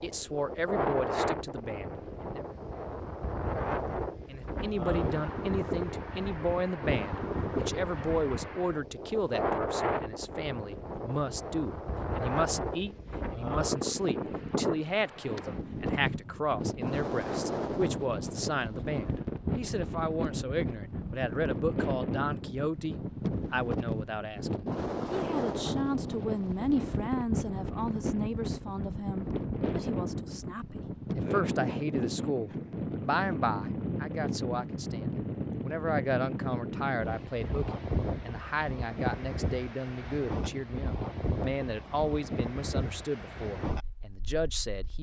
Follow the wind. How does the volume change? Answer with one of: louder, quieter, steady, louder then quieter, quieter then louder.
steady.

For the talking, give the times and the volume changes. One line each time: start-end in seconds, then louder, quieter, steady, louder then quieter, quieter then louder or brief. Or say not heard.
0.0-2.5 brief
4.2-44.9 steady.